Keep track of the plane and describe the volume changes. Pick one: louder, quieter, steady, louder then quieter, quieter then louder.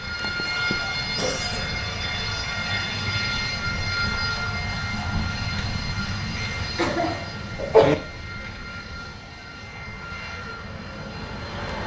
quieter.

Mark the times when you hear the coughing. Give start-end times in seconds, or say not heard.
0.1-1.7, 6.8-8.0.